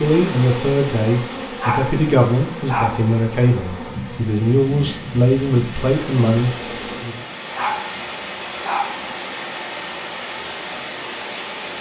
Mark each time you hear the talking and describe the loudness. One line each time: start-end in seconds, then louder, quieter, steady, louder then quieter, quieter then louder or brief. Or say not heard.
0.0-7.2 steady.